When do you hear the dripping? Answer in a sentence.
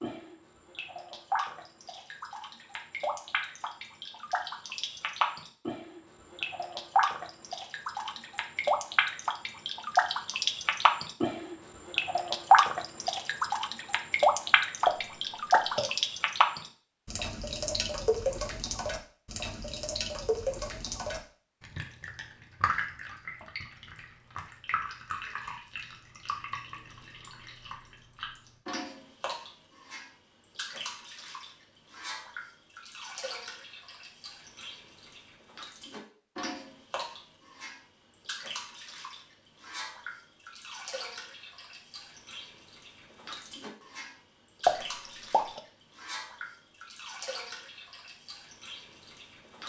The dripping can be heard from 0.0 to 49.6 s.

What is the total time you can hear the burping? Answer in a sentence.
You can hear the burping for 2 seconds altogether.